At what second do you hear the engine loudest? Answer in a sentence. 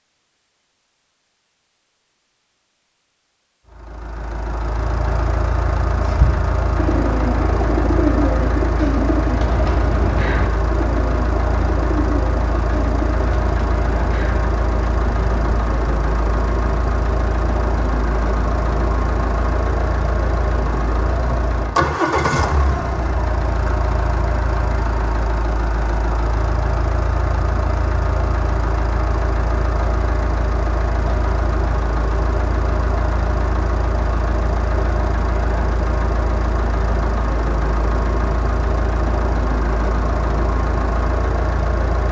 The loudest moment of the engine is at 22 seconds.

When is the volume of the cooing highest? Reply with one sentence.
The loudest moment of the cooing is at 8 seconds.